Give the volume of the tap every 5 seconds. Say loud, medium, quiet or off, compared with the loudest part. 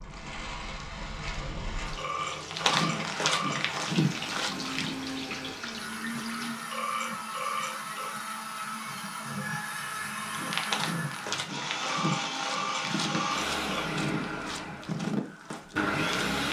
loud, loud, off, off.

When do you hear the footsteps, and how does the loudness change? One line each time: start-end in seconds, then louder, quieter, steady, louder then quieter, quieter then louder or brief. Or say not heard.
2.5-4.9 brief
10.3-16.4 steady.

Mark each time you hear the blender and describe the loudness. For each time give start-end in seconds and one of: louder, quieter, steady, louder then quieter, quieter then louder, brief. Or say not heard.
0.0-16.4 louder.